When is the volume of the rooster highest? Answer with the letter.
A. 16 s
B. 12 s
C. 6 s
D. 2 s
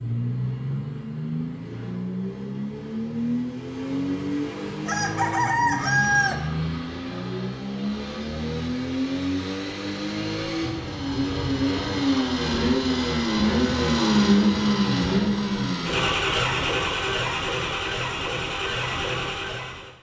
C.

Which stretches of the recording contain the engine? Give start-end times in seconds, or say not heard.
0.0-19.9.